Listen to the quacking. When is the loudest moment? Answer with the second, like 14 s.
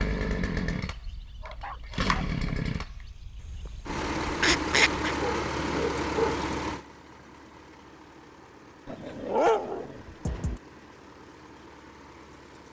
5 s.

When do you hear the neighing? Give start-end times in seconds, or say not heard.
not heard.